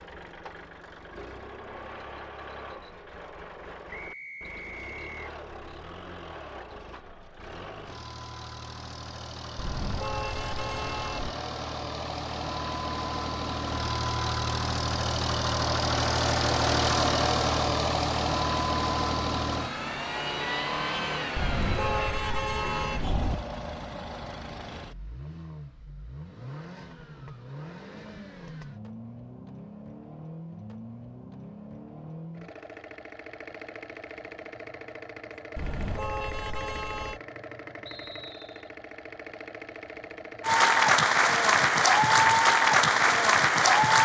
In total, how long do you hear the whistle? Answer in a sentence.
The whistle can be heard for 2 seconds in total.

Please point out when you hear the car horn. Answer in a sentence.
You can hear the car horn from 9.6 to 11.3 s, from 21.4 to 23.4 s and from 35.5 to 37.2 s.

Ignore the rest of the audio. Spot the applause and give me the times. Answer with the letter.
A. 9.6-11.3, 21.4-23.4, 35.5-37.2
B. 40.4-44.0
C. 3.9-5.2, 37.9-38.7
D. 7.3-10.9
B.